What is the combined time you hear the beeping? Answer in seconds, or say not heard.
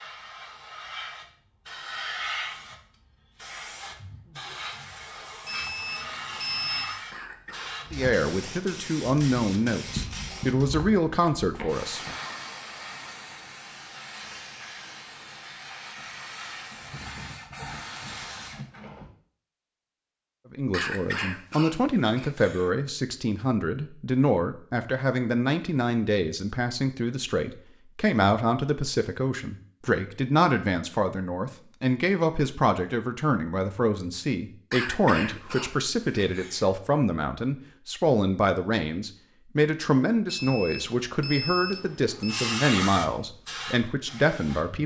4 s.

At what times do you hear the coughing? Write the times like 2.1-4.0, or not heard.
7.1-7.8, 20.7-22.7, 34.7-36.7.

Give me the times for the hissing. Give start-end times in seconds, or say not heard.
0.0-19.1, 42.2-44.8.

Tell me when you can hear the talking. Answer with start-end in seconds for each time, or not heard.
7.9-12.0, 20.5-44.8.